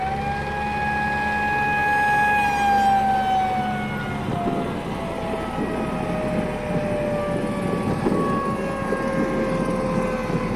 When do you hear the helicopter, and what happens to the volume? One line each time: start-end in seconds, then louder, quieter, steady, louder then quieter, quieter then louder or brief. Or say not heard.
0.0-10.5 steady.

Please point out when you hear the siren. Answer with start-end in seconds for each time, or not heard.
0.0-10.5.